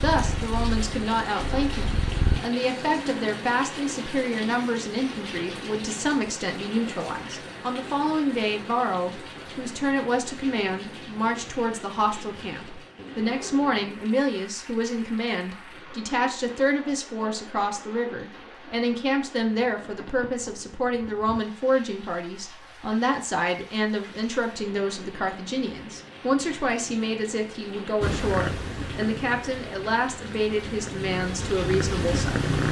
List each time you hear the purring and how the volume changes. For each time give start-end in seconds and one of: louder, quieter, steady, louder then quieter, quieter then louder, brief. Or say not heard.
0.0-2.4 brief
28.0-32.6 quieter then louder.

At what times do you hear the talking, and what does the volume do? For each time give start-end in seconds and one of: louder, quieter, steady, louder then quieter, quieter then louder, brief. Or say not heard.
0.0-32.6 steady.